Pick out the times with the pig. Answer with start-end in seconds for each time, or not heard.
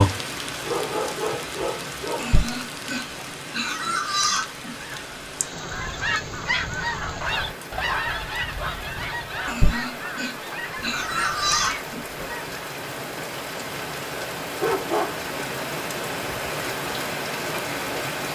2.1-4.8, 9.4-12.2.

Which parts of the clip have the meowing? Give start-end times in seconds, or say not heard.
not heard.